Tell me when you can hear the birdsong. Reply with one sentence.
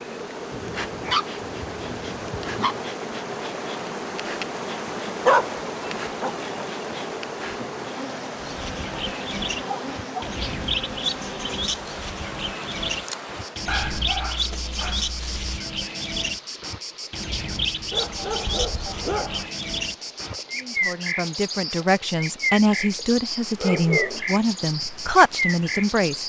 You can hear the birdsong from 8.3 to 26.2 s.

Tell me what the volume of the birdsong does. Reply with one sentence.
The loudness of the birdsong stays about the same.